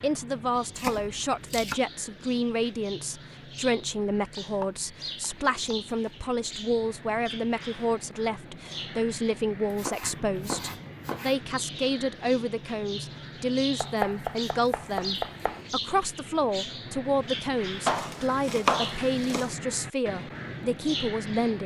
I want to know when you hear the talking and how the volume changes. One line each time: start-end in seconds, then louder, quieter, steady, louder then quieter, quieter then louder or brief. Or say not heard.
0.0-21.6 steady.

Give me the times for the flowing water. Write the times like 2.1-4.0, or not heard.
not heard.